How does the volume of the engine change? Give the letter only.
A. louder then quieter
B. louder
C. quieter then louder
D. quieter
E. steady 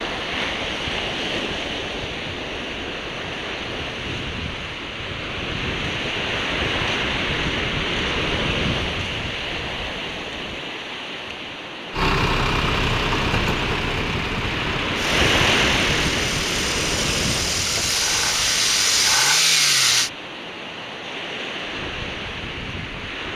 C.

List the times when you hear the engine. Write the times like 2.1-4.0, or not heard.
11.9-20.1.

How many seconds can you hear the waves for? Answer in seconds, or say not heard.
23 s.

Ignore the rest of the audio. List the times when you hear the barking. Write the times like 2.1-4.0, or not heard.
not heard.